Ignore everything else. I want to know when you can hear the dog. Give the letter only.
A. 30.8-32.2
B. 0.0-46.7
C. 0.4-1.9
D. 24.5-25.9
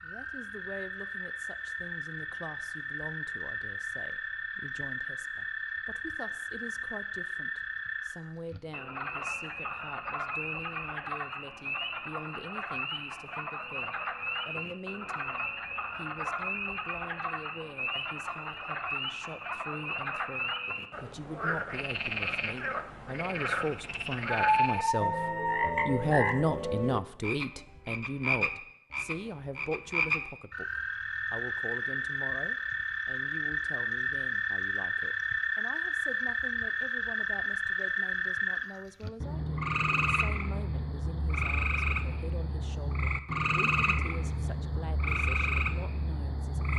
D.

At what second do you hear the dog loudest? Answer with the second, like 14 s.
25 s.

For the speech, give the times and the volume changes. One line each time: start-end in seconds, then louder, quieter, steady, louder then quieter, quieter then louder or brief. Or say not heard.
0.0-46.7 louder then quieter.